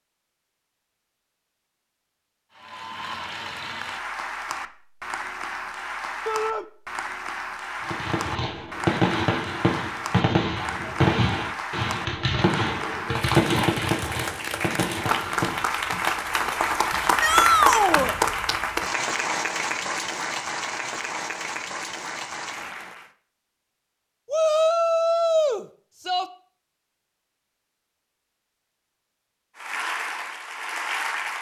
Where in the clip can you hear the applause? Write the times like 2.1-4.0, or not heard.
2.5-23.1, 29.6-31.3.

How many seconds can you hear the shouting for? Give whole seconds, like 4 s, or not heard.
3 s.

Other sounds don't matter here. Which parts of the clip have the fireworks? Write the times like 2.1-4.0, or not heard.
7.8-16.1.